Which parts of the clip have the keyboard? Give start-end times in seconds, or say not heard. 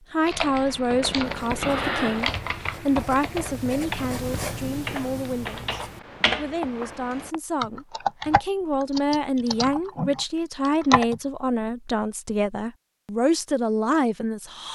0.1-11.2.